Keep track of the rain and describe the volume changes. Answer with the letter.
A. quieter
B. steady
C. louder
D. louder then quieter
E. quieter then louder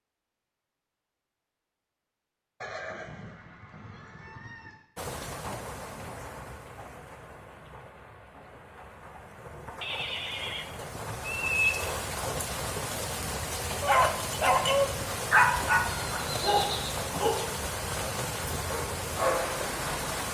C.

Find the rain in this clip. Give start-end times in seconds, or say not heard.
5.0-20.2.